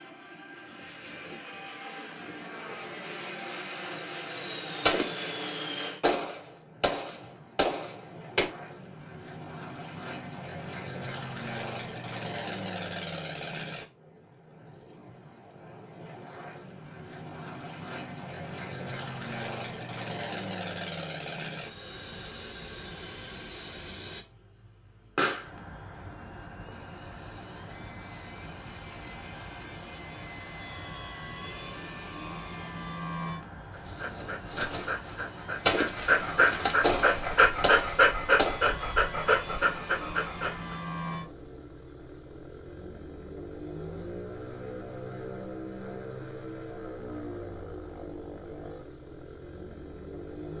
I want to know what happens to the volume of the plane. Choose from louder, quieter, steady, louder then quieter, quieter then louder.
steady.